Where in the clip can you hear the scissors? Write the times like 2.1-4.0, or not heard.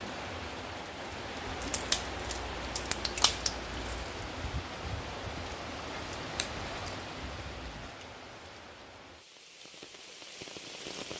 1.6-4.0, 5.9-7.9.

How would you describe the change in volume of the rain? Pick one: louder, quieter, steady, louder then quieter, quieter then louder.
quieter.